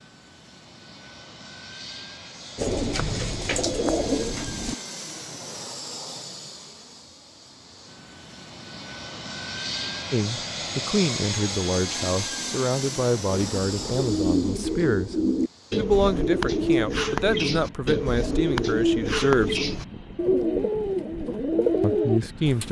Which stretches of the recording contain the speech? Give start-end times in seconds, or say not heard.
10.1-15.2, 15.8-19.6, 21.8-22.6.